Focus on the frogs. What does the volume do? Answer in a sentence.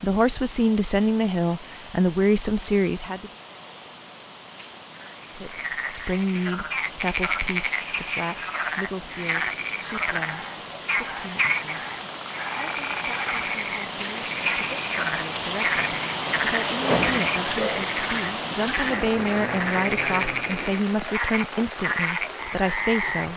The volume of the frogs stays about the same.